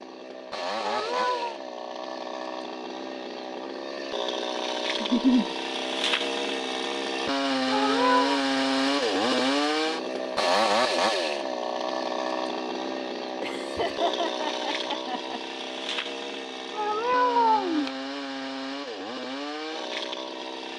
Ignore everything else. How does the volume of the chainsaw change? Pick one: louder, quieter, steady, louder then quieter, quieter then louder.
louder then quieter.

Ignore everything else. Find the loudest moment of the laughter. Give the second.
5 s.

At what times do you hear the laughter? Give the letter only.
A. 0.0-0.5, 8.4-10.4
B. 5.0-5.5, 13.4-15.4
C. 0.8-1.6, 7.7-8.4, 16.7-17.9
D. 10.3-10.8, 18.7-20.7
B.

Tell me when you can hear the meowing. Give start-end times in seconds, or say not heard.
0.8-1.6, 7.7-8.4, 16.7-17.9.